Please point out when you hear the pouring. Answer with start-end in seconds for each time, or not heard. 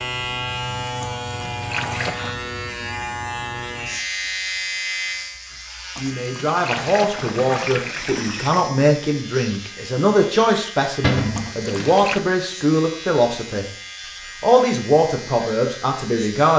1.0-2.4, 6.0-8.7, 11.3-12.2.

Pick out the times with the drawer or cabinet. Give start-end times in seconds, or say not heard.
11.0-11.5.